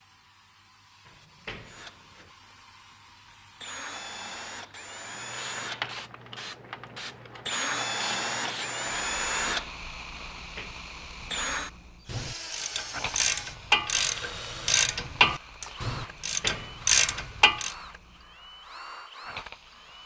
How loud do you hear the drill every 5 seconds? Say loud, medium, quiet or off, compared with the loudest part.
medium, loud, medium, quiet.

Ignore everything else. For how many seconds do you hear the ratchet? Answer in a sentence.
The ratchet can be heard for 6 seconds in total.